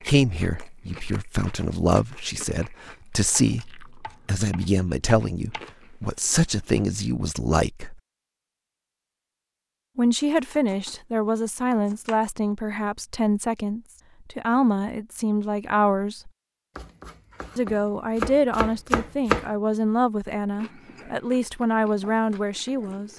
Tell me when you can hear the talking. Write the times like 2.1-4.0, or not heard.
0.0-8.0, 9.9-16.3, 17.6-23.1.